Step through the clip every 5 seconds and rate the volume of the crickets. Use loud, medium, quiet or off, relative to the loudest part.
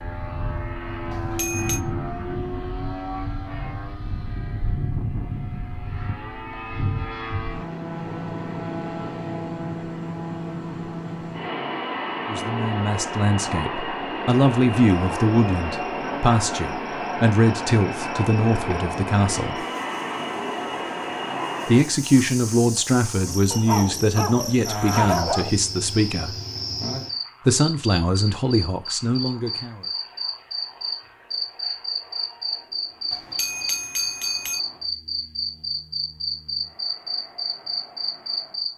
off, off, off, quiet, medium, loud, loud, loud.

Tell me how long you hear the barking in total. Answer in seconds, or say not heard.
2 s.